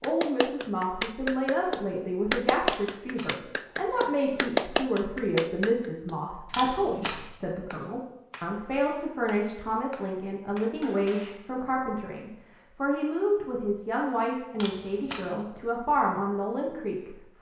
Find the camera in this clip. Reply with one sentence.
You can hear the camera from 2.6 to 3.4 s, from 6.5 to 7.2 s and from 14.6 to 15.3 s.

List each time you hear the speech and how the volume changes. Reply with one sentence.
The speech can be heard from 0.0 to 17.3 s, at a steady volume.